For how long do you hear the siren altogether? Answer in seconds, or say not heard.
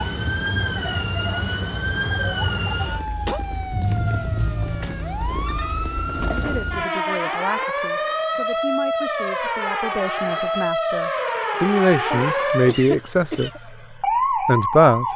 15 s.